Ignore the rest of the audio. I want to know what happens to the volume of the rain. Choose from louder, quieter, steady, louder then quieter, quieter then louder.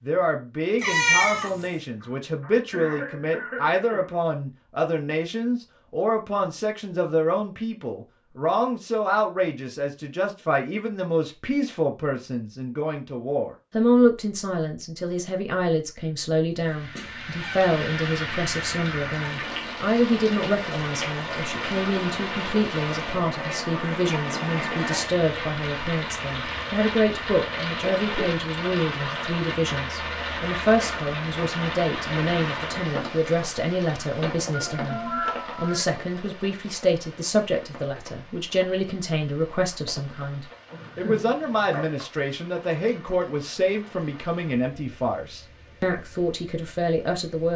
quieter.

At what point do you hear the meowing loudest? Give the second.
1 s.